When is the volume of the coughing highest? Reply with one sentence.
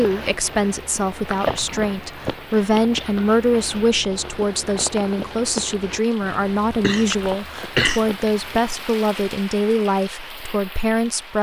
The volume of the coughing peaks at 8 seconds.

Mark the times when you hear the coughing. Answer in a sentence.
The coughing can be heard from 1.4 to 2.4 s and from 6.7 to 8.5 s.